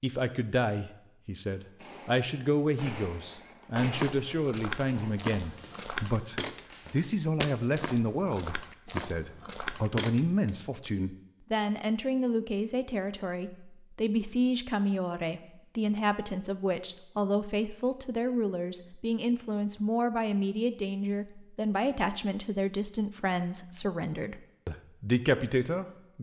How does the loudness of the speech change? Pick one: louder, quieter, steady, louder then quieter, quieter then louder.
steady.